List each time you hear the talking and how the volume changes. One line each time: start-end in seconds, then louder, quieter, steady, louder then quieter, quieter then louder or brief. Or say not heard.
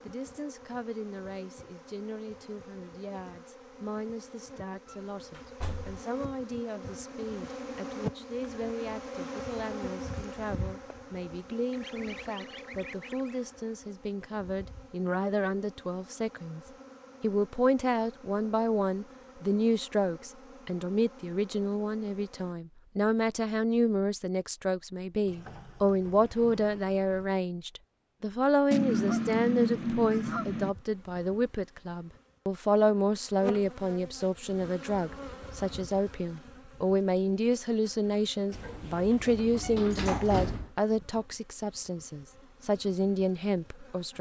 0.0-16.6 louder
17.2-44.1 steady.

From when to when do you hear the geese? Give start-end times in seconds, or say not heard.
11.7-13.4, 28.7-30.7.